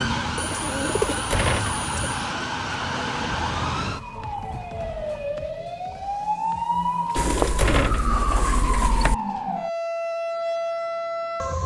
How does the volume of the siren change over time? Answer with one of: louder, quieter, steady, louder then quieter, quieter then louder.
steady.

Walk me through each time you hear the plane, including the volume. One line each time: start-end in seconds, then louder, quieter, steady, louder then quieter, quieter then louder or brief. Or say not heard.
not heard.